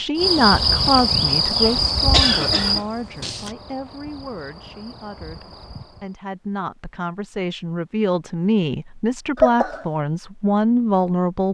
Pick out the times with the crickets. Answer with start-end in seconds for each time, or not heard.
0.0-6.2.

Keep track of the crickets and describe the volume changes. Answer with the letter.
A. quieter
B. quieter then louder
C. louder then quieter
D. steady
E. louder
A.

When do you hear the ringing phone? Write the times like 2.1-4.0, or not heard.
not heard.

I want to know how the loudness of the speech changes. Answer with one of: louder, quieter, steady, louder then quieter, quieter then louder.
quieter then louder.